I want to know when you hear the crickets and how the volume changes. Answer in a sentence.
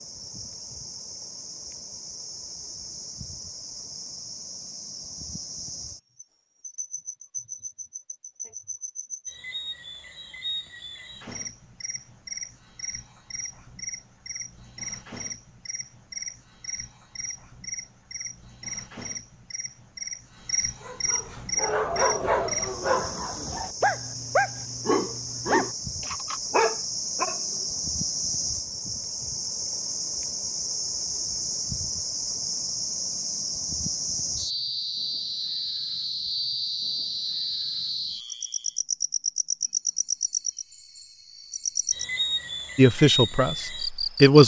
You can hear the crickets from 0.0 to 44.4 s, getting louder.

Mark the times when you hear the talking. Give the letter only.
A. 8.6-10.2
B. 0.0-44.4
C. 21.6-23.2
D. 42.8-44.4
D.